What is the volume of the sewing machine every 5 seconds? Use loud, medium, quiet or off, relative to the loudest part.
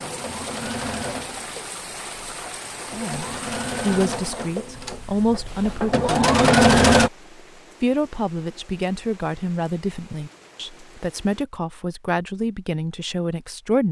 quiet, loud, off.